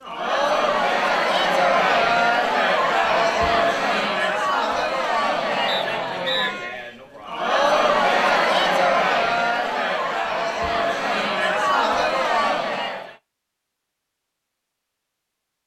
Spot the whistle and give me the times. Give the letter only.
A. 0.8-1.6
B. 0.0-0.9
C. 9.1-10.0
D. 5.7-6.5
D.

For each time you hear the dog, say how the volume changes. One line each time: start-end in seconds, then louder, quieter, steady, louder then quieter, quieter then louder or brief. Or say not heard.
not heard.